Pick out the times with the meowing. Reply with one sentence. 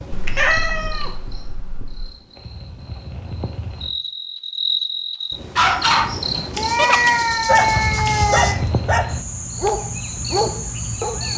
You can hear the meowing from 0.1 to 2.1 s and from 6.5 to 8.6 s.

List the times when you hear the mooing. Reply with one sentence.
The mooing can't be heard in this clip.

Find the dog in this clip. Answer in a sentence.
The dog can be heard from 5.5 to 11.3 s.